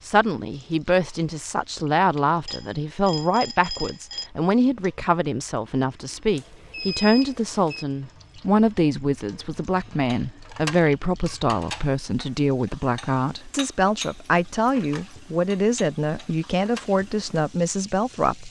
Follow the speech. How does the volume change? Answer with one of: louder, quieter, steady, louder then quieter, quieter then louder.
steady.